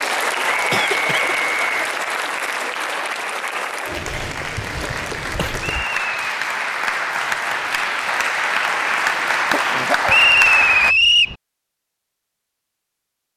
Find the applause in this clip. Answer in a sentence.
You can hear the applause from 0.0 to 10.9 s.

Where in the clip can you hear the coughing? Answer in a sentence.
You can hear the coughing from 0.7 to 1.4 s, from 5.2 to 5.7 s and from 9.1 to 10.3 s.